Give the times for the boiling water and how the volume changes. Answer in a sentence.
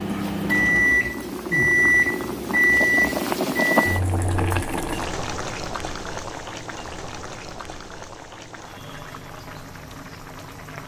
The boiling water can be heard from 0.0 to 10.8 s, getting louder then quieter.